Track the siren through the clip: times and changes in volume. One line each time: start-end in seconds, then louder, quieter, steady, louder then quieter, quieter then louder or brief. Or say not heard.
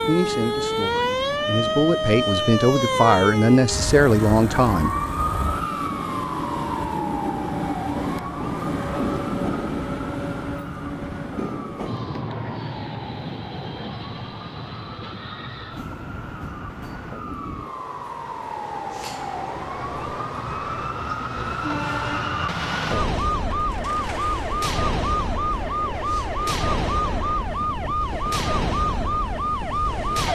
0.0-30.3 quieter then louder.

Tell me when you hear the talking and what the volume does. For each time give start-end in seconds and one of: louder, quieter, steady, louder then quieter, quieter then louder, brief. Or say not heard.
0.0-5.0 louder.